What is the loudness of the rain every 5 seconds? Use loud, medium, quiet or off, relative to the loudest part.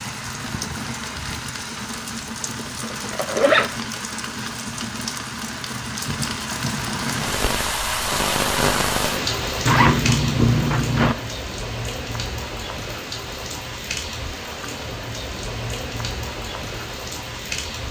medium, loud, medium, medium.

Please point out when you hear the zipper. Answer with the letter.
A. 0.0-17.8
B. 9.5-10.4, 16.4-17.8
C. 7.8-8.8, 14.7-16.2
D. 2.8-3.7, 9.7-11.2
D.